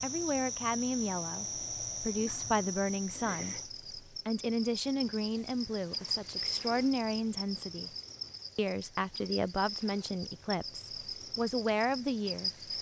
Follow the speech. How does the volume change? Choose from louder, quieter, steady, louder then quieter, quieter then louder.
steady.